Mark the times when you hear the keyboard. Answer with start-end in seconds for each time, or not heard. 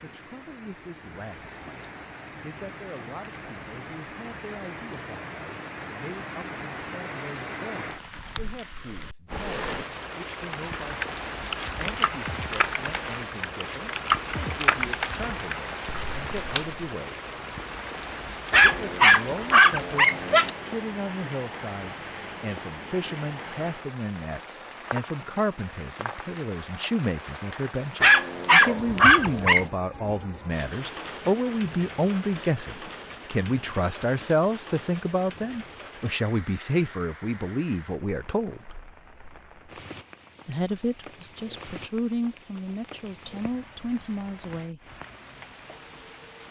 10.3-16.8.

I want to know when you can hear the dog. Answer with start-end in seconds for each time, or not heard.
18.5-20.5, 28.0-29.6.